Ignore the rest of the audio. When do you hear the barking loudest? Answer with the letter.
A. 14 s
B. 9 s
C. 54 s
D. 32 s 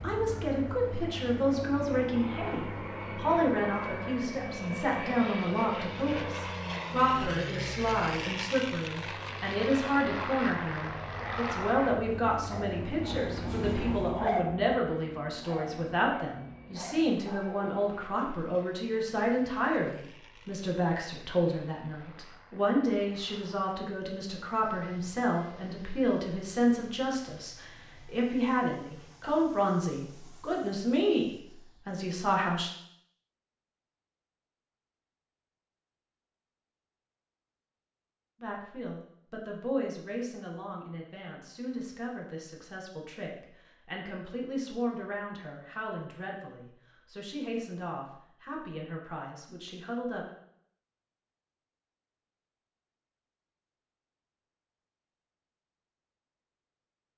A.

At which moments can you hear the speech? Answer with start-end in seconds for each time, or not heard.
0.0-32.7, 38.4-50.3.